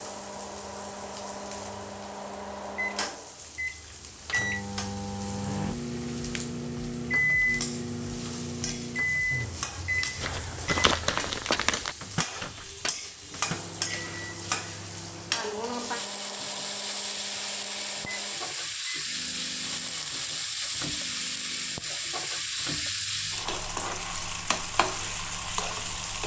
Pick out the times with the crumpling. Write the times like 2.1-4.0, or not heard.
10.2-11.9.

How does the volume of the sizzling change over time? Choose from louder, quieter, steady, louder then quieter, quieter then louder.
louder.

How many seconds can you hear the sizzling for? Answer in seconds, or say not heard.
26 s.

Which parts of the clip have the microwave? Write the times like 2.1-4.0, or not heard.
0.0-26.2.